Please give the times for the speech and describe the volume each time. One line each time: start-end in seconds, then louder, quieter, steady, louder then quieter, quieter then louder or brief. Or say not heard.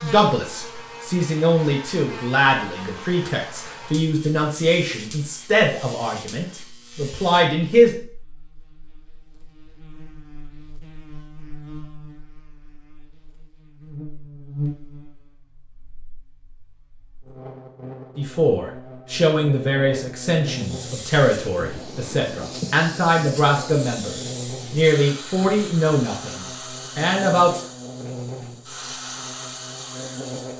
0.0-7.9 steady
18.1-27.6 steady.